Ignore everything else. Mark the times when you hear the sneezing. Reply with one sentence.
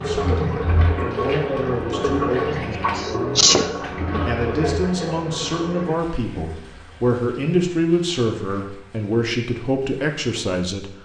The sneezing can be heard from 3.0 to 3.6 s.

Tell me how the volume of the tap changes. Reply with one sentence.
The volume of the tap goes down.